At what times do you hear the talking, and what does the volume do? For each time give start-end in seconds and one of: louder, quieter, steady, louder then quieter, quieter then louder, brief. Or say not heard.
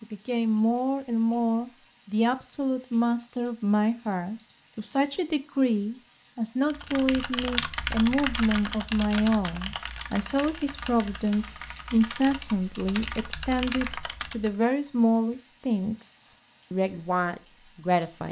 0.0-18.2 steady.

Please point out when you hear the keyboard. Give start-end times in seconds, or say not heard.
6.7-14.5.